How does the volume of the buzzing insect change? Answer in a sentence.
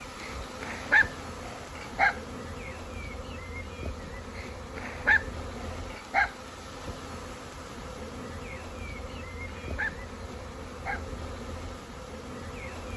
The volume of the buzzing insect stays about the same.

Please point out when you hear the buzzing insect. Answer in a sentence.
You can hear the buzzing insect from 0.0 to 12.9 s.